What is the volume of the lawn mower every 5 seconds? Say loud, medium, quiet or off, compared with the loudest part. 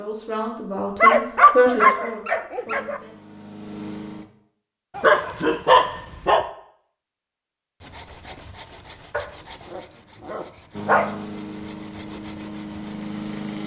medium, off, loud.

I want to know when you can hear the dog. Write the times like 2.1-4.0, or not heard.
1.0-3.0, 5.0-6.5, 9.1-11.1.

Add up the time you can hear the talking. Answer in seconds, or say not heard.
3 s.